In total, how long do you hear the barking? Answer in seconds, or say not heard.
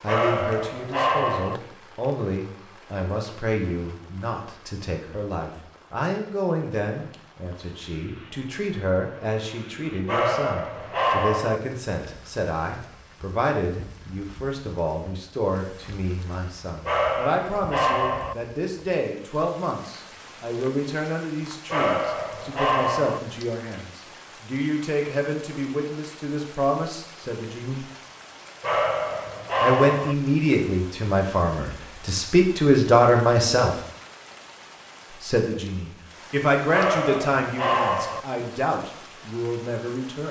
9 s.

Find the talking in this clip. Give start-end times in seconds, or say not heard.
0.0-27.9, 29.6-33.8, 35.2-40.2.